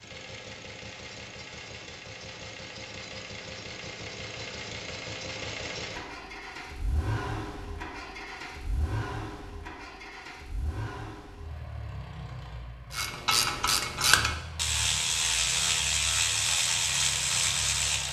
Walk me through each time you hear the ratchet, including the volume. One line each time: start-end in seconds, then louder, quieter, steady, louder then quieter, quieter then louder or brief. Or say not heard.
12.9-18.0 steady.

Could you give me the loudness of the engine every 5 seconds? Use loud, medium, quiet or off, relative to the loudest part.
loud, loud, medium, medium.